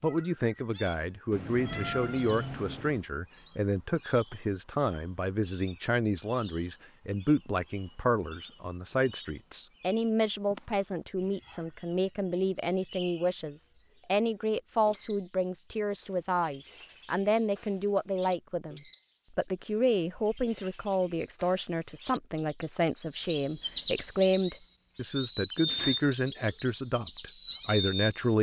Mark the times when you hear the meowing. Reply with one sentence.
The meowing can be heard from 1.3 to 3.0 s and from 25.6 to 26.6 s.